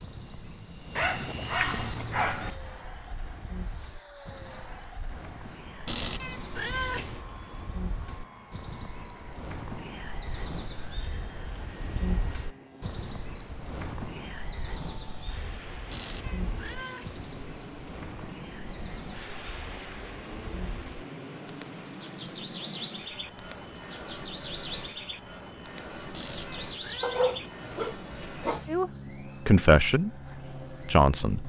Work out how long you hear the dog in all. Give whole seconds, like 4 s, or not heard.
3 s.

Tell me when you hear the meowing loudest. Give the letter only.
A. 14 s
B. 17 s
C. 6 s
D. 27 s
C.